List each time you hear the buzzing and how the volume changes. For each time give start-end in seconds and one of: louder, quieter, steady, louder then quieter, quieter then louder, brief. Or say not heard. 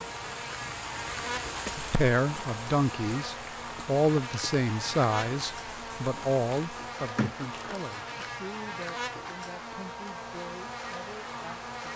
0.0-11.9 steady.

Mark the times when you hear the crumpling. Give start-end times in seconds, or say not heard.
6.8-8.3.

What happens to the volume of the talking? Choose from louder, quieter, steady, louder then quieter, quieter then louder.
quieter.